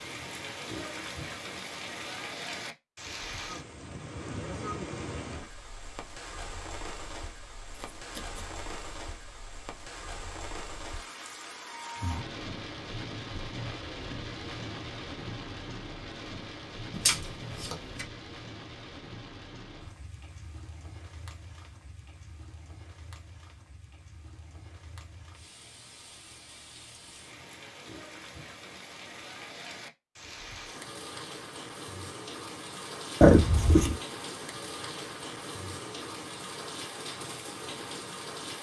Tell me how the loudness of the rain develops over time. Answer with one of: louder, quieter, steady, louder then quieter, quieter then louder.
quieter then louder.